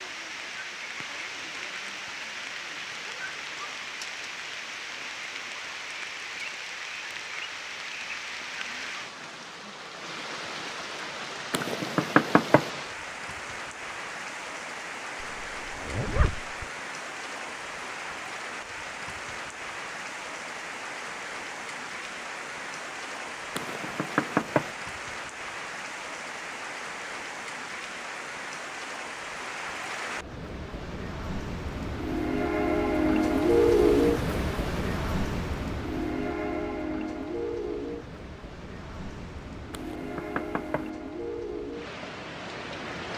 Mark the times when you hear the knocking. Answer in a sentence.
The knocking can be heard from 11.5 to 12.7 s, from 23.6 to 24.8 s and from 39.7 to 40.9 s.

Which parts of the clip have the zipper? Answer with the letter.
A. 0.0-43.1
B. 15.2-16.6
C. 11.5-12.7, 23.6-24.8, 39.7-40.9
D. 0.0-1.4
B.